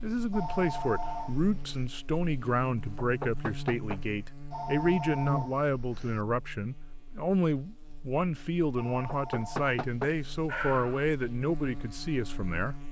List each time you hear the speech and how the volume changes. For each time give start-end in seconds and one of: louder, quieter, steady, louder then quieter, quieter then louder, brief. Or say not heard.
0.0-12.8 steady.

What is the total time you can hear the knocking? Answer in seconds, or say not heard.
3 s.